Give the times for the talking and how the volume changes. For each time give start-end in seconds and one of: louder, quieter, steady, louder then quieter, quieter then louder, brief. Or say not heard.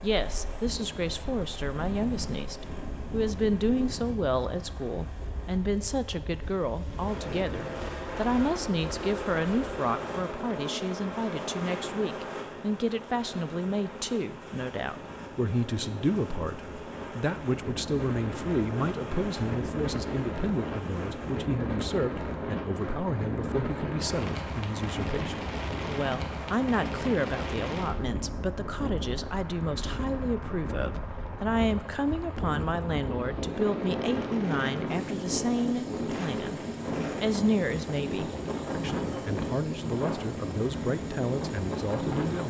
0.0-42.4 steady.